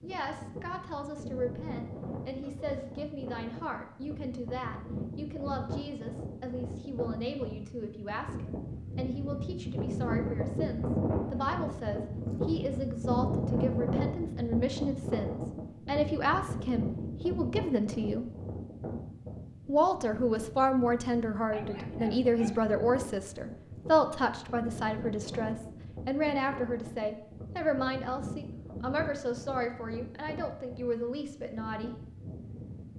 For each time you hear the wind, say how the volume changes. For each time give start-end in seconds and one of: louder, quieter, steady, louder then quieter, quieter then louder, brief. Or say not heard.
0.0-32.9 louder then quieter.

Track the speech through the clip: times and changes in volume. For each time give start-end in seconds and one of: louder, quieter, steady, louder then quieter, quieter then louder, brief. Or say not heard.
0.0-18.2 louder
19.6-31.9 quieter.